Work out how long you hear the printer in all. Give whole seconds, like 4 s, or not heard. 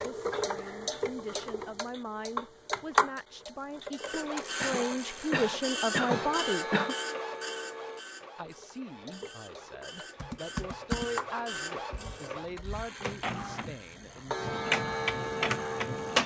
12 s.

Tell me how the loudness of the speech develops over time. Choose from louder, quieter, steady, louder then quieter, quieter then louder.
louder then quieter.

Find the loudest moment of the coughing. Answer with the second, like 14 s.
6 s.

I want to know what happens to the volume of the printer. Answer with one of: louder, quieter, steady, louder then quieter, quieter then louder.
quieter then louder.